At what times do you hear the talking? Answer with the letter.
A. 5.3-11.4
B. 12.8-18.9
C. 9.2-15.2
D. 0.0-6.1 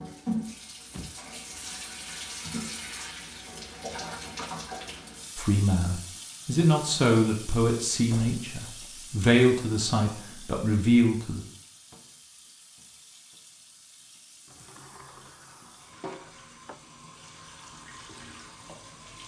A.